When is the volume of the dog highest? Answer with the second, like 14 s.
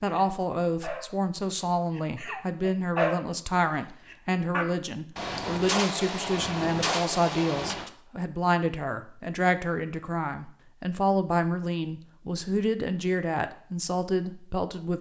3 s.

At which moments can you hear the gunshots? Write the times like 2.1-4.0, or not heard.
5.2-7.9.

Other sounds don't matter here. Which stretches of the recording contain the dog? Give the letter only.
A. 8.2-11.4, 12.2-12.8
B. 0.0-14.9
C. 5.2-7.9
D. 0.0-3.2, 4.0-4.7
D.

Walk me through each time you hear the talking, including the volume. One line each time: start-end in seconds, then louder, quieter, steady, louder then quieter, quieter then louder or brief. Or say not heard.
0.0-14.9 steady.